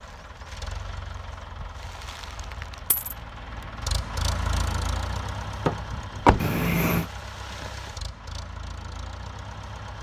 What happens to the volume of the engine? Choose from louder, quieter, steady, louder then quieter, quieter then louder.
louder then quieter.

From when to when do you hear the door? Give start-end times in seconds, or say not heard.
5.7-6.5.